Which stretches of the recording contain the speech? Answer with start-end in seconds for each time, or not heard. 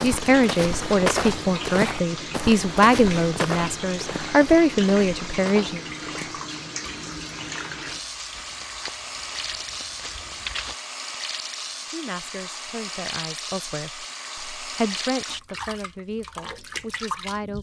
0.0-5.8, 11.9-17.5.